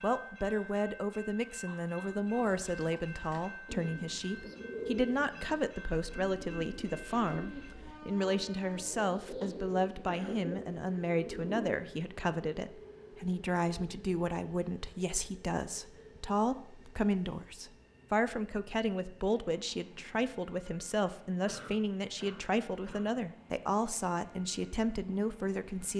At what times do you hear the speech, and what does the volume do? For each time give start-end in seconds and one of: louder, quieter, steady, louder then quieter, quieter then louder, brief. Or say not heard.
0.0-25.9 steady.